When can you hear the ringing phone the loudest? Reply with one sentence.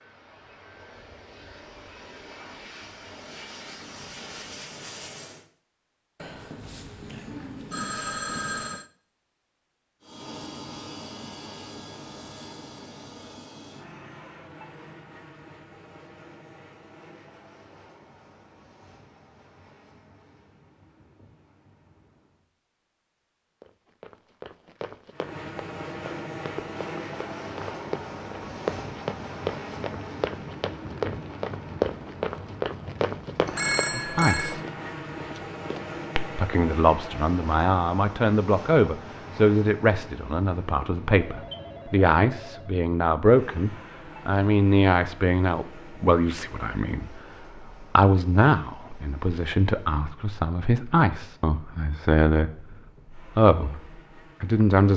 The volume of the ringing phone peaks at 34 seconds.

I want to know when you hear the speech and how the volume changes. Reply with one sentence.
The speech can be heard briefly from 33.9 to 34.6 s; and from 36.4 to 54.9 s, at a steady volume.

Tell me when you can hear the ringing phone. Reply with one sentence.
You can hear the ringing phone from 6.2 to 8.8 s, from 33.5 to 34.5 s and from 41.1 to 42.8 s.